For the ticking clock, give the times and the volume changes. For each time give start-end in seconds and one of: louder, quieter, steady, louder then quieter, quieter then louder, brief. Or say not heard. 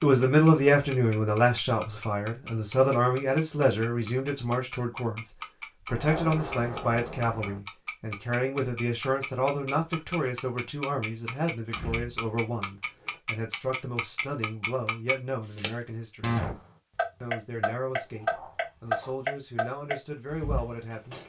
0.0-21.2 louder.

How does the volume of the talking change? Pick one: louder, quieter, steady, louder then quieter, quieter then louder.
quieter.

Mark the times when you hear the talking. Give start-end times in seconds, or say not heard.
0.0-16.4, 17.2-21.2.